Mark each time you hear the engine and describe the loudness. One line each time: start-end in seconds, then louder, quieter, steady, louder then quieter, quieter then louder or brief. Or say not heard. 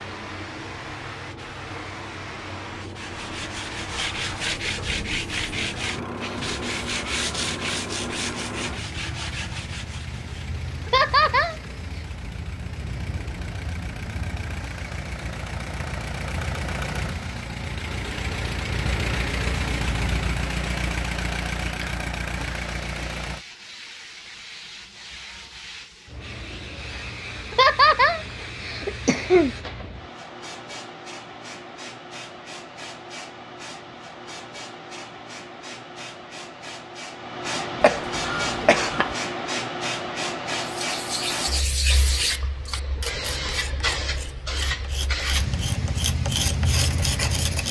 4.6-23.4 louder.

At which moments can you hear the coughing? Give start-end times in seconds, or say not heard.
10.8-11.6, 27.5-29.5, 37.8-39.1.